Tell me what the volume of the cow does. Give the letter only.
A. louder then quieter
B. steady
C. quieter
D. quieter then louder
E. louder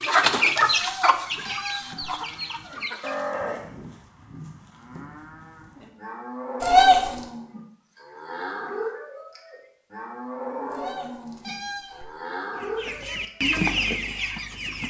D.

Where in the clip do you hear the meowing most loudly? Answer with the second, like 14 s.
7 s.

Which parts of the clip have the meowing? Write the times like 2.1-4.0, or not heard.
0.8-2.1, 6.6-7.2, 10.7-12.2.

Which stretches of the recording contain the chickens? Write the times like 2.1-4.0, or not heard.
0.0-3.2, 12.6-14.8.